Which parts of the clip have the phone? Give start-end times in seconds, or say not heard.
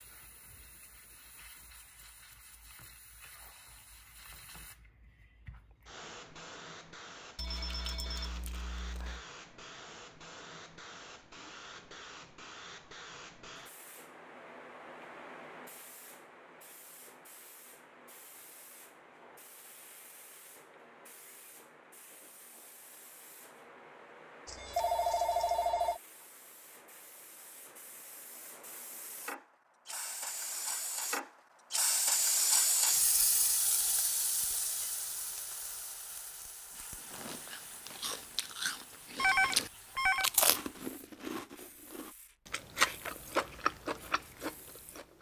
7.3-9.2, 24.4-26.0, 39.1-40.3.